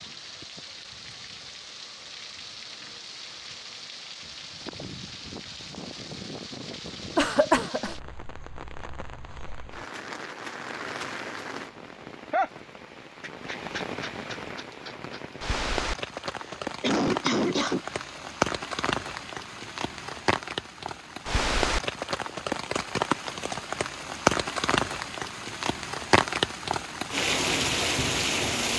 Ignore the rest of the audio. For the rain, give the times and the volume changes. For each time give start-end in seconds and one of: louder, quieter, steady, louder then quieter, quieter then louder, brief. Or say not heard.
0.0-28.7 louder.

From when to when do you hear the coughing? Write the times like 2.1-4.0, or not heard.
7.2-8.0, 16.4-18.0.